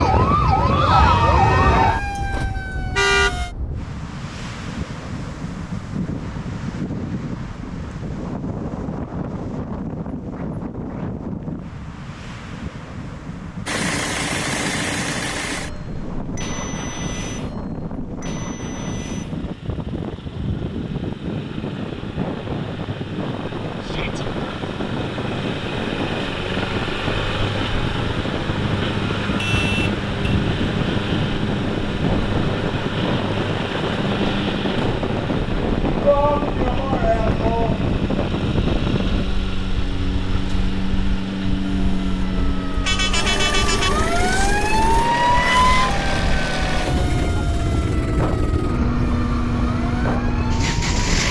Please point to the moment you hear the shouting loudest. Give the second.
36 s.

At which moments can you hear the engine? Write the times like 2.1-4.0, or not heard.
13.7-51.2.